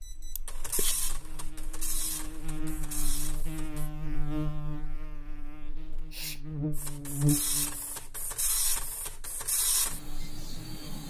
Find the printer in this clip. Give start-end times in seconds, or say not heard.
0.0-3.9, 6.7-11.0.